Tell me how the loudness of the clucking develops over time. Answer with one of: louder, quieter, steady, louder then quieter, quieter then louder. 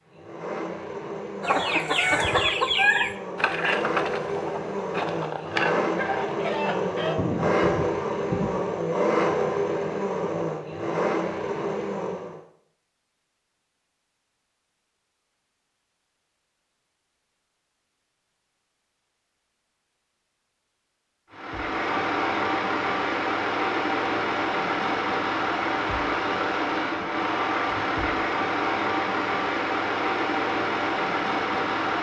quieter.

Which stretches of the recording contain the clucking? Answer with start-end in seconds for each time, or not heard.
1.4-8.6.